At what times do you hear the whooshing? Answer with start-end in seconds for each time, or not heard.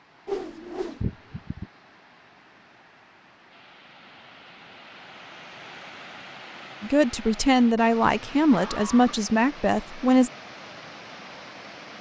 0.2-1.0.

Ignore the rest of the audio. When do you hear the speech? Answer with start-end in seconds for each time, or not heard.
6.8-10.3.